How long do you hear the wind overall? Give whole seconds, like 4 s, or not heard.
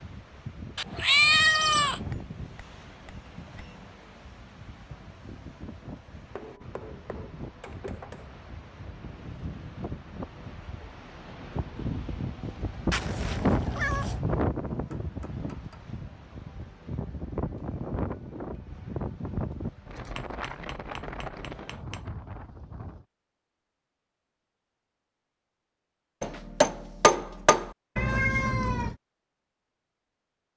23 s.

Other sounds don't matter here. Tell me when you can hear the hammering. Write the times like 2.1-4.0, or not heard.
1.6-4.0, 6.3-8.3, 14.7-15.8, 20.1-22.0, 26.2-27.8.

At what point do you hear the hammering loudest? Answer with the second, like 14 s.
27 s.